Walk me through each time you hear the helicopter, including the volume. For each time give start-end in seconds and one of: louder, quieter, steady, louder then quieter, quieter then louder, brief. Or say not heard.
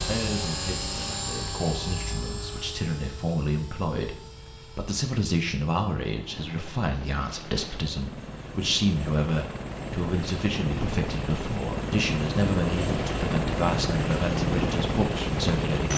0.0-15.9 quieter then louder.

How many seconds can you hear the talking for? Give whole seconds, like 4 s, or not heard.
16 s.